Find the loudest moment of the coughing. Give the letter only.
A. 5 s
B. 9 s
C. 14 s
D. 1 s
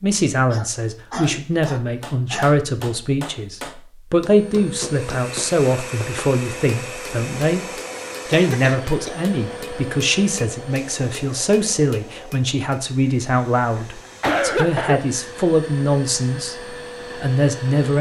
C.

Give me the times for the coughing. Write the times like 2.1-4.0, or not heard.
0.5-2.5, 8.3-9.2, 13.8-15.1.